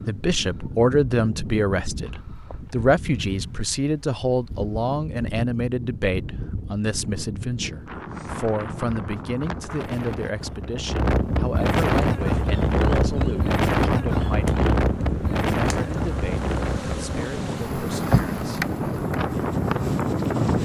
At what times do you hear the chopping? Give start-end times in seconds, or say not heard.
not heard.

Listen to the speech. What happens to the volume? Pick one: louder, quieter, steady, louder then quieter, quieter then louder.
quieter.